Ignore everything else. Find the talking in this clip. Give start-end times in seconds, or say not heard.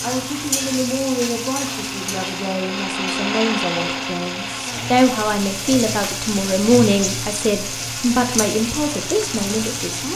0.0-10.1.